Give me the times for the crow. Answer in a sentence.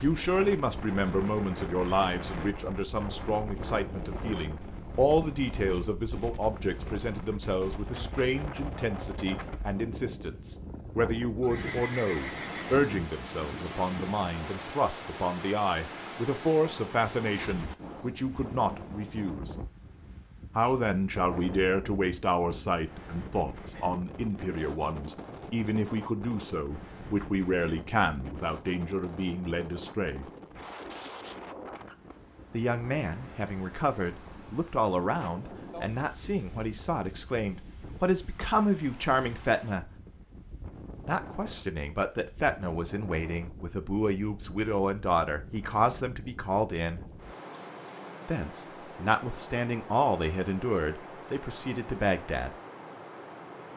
You can't hear the crow here.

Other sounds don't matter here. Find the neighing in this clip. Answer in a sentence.
You can hear the neighing from 11.4 to 12.7 s.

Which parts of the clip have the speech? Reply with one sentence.
The speech can be heard from 0.0 to 19.5 s, from 20.6 to 30.2 s, from 32.5 to 39.9 s, from 41.0 to 47.0 s and from 48.2 to 52.5 s.